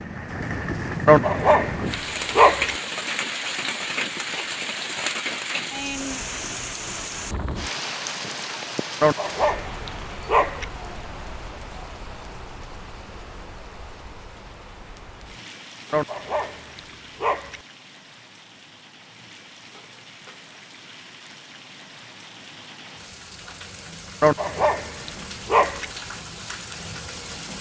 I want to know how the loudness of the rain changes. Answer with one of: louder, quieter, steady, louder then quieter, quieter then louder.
quieter then louder.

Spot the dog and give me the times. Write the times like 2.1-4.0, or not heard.
1.1-2.8, 9.0-10.7, 15.9-17.6, 24.2-25.9.